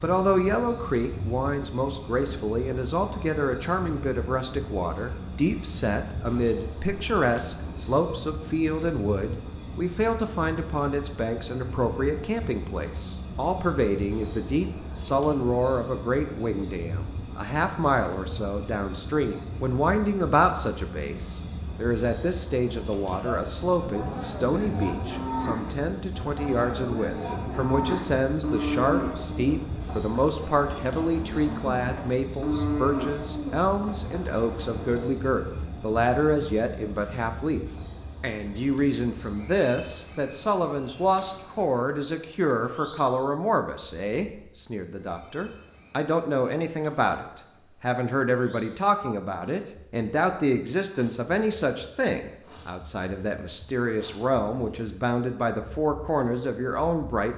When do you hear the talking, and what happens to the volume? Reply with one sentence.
You can hear the talking from 0.0 to 57.3 s, at a steady volume.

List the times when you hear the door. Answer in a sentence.
You can't hear the door here.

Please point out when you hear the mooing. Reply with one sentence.
The mooing can be heard from 23.1 to 35.1 s.